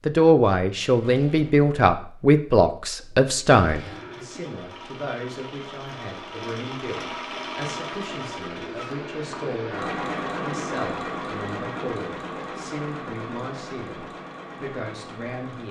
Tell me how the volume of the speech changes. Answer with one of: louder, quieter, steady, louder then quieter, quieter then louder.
quieter.